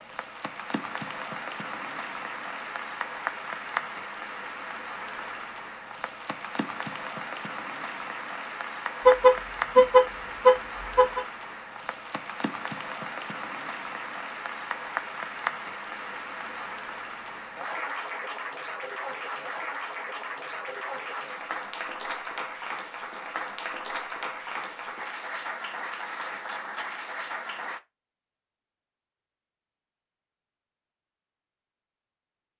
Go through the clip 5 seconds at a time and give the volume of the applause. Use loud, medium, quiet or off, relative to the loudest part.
loud, loud, loud, loud, loud, loud, off.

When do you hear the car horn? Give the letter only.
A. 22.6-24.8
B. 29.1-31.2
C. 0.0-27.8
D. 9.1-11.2
D.